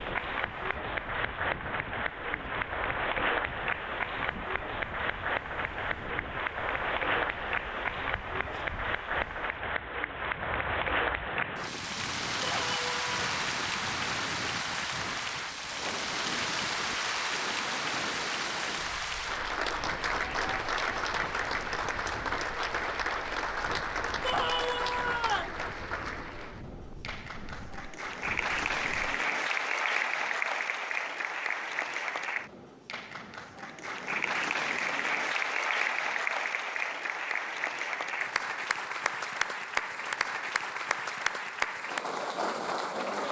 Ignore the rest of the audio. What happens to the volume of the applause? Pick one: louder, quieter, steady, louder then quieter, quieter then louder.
steady.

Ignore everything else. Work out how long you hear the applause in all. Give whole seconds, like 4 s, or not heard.
43 s.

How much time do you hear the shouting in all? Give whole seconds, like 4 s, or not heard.
2 s.